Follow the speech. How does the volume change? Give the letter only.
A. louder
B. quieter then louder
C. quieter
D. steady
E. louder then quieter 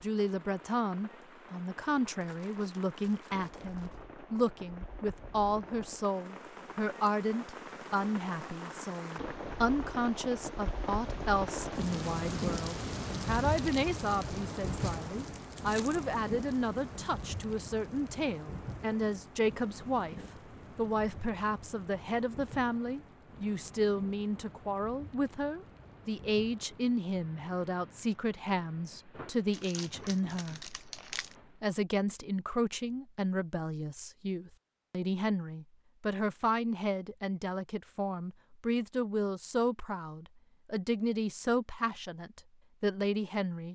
D.